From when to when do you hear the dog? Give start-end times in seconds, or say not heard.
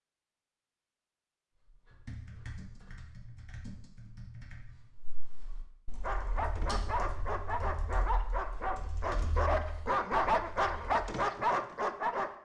6.0-12.3.